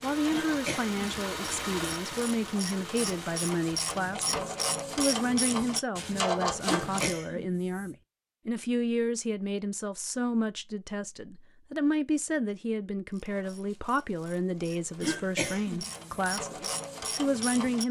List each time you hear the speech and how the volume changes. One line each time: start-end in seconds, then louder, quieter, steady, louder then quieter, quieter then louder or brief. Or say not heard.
0.0-17.8 steady.